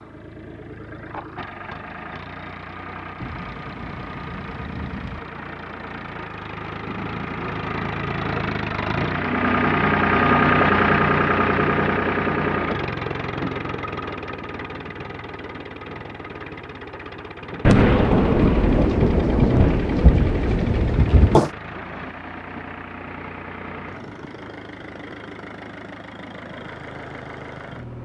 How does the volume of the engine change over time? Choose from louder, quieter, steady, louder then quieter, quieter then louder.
louder then quieter.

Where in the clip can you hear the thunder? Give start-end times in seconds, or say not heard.
3.2-5.2, 17.6-21.5.